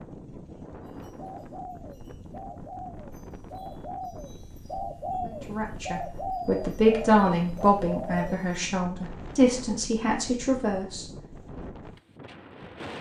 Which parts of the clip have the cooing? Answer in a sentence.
The cooing can be heard from 0.8 to 8.6 s.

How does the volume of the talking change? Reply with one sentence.
The volume of the talking goes up, then down.